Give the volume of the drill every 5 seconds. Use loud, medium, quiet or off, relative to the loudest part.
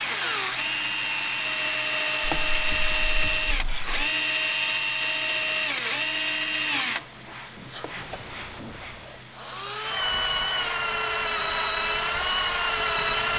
loud, medium, loud.